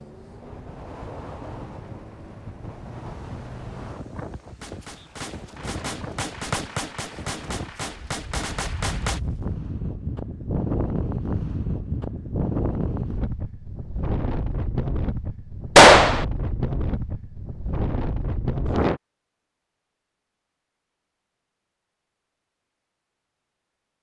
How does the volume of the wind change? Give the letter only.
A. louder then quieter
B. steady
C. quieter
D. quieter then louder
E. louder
E.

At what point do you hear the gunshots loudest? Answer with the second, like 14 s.
16 s.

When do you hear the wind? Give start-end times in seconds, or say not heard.
0.0-19.0.